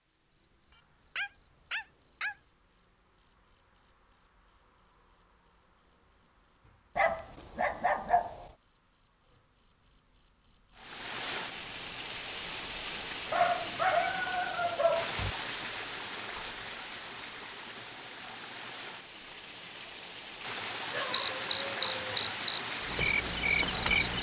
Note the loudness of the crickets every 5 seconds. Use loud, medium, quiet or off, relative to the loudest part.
quiet, quiet, loud, quiet, quiet.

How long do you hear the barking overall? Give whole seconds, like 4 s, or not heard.
7 s.